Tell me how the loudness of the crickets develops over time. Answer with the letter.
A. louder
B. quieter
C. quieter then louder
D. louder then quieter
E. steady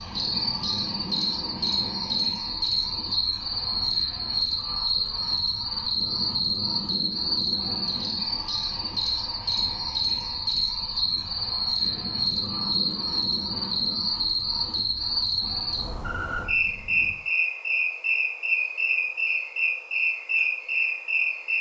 E.